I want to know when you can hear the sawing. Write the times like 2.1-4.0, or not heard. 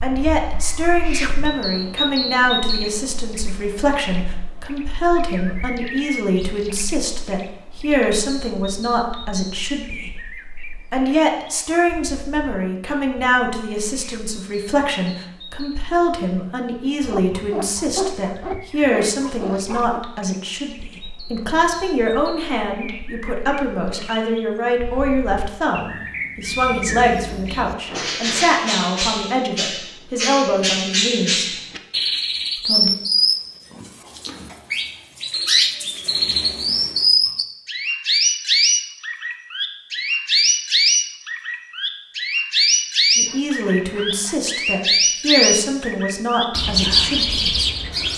17.0-20.0, 43.2-44.4.